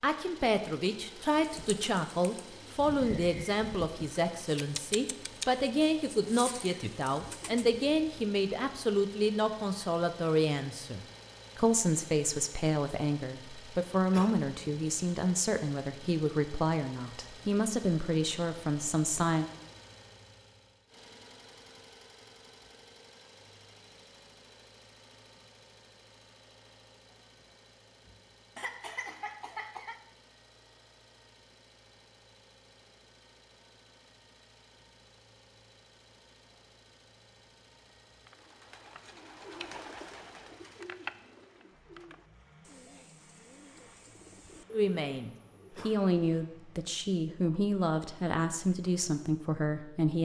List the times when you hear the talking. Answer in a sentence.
The talking can be heard from 0.0 to 19.4 s and from 44.7 to 50.2 s.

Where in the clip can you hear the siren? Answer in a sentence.
The siren can't be heard in this clip.